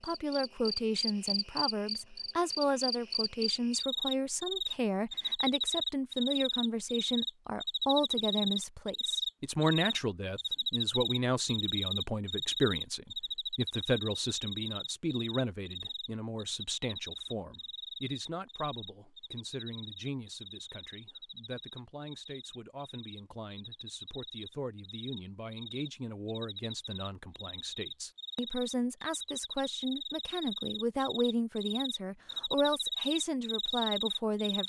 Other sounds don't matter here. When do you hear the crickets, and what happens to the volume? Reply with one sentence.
You can hear the crickets from 0.0 to 34.6 s, getting quieter then louder.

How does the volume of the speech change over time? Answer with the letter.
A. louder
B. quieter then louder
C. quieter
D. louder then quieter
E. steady
B.